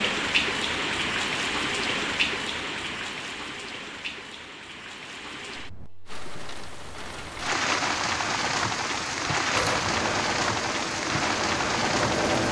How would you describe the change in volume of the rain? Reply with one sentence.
The loudness of the rain goes down, then up.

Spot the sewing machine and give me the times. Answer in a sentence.
You can hear the sewing machine from 9.5 to 12.4 s.